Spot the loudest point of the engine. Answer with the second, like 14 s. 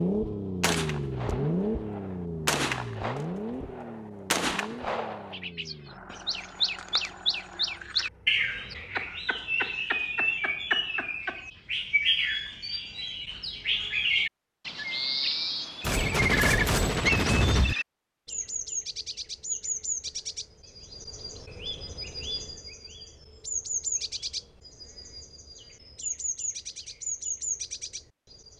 1 s.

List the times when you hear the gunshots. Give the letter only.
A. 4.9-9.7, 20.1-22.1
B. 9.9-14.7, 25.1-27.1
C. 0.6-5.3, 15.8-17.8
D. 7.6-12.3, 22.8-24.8
C.